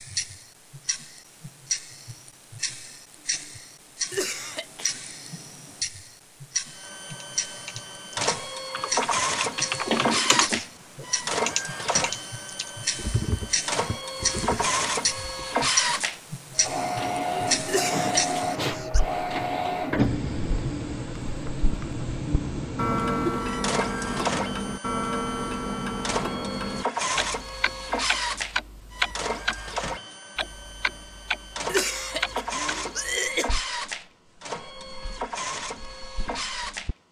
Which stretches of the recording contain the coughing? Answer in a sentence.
You can hear the coughing from 4.1 to 4.8 s, from 17.6 to 19.0 s and from 31.6 to 33.5 s.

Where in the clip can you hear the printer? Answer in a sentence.
The printer can be heard from 6.7 to 37.0 s.